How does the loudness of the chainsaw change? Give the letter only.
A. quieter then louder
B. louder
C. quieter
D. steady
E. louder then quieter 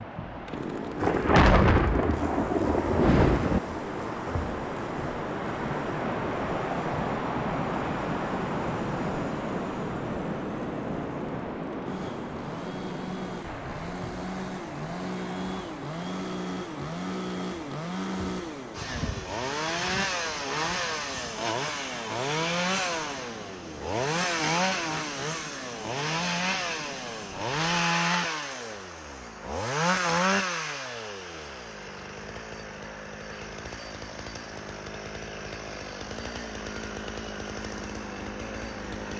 E.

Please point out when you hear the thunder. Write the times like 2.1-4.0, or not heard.
1.0-3.6.